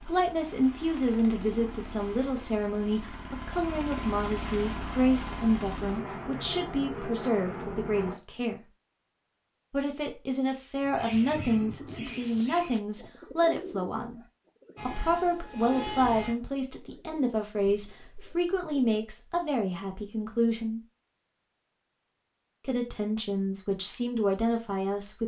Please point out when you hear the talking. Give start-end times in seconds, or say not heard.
0.1-8.6, 9.7-14.2, 14.8-20.8, 22.6-25.2.